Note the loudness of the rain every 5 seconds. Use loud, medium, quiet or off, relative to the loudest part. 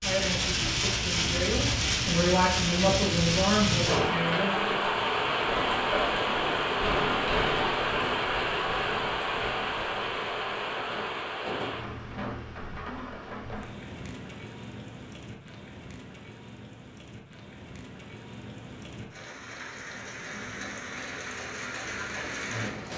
loud, loud, medium, quiet, medium.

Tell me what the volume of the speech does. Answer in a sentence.
The loudness of the speech goes up, then down.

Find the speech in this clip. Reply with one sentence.
You can hear the speech from 0.0 to 4.9 s.